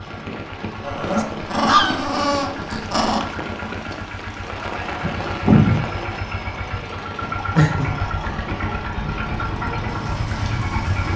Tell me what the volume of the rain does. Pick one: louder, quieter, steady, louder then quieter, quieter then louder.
louder then quieter.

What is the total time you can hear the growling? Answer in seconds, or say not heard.
4 s.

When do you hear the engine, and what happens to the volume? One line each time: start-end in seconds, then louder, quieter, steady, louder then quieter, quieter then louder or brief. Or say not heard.
0.0-11.1 louder.